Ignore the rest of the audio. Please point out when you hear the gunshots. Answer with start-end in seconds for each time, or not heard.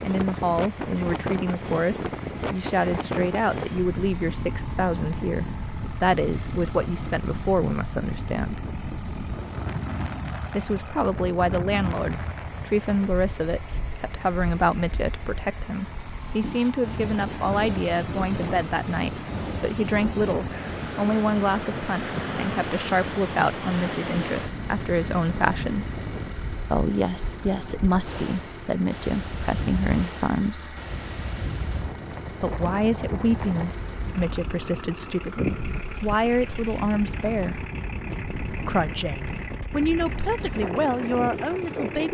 not heard.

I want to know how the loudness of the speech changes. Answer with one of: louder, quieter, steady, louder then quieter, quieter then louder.
steady.